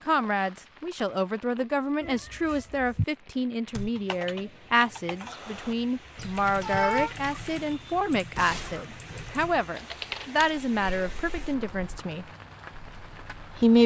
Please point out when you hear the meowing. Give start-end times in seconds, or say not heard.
2.0-3.0, 6.2-7.1, 10.3-12.0.